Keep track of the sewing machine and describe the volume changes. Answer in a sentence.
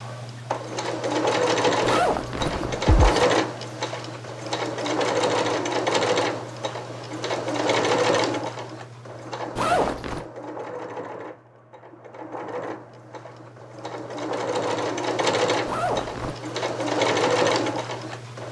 The loudness of the sewing machine goes down, then up.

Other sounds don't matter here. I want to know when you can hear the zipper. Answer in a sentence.
The zipper can be heard from 1.9 to 3.2 s, from 9.6 to 10.2 s and from 15.7 to 16.4 s.